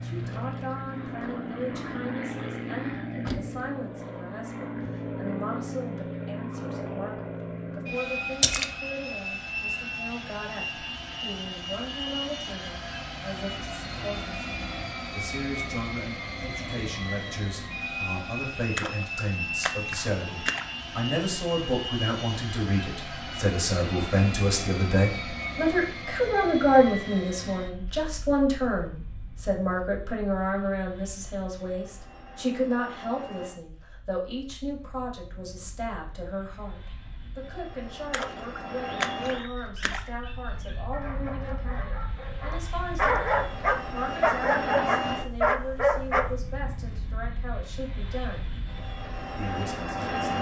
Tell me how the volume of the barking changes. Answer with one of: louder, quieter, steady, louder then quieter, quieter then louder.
louder.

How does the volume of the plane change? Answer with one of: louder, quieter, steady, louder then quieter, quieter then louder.
quieter then louder.